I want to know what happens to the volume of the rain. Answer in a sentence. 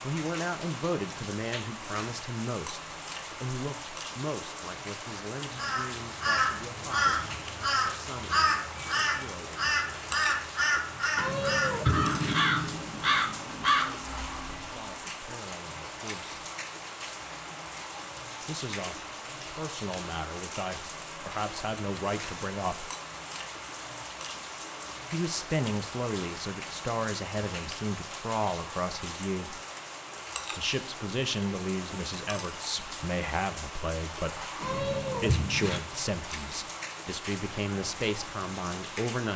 The volume of the rain stays about the same.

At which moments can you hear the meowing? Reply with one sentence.
You can hear the meowing from 11.2 to 12.3 s and from 34.6 to 35.8 s.